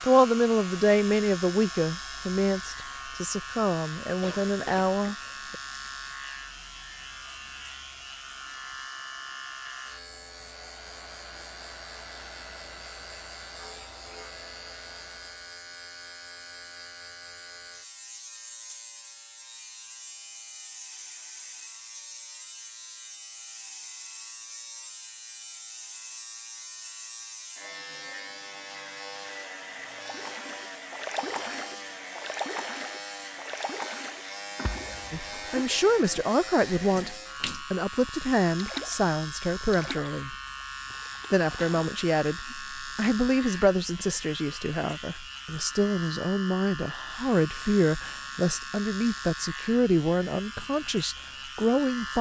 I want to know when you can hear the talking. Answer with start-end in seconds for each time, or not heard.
0.0-5.5, 35.1-40.4, 41.3-52.1.